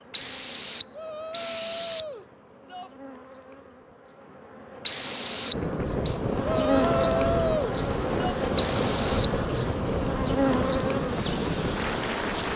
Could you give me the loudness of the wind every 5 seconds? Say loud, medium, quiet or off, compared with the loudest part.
off, loud, loud.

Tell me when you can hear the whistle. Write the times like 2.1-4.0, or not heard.
0.1-2.1, 4.8-6.2, 8.6-9.4.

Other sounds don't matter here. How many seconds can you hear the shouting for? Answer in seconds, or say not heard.
4 s.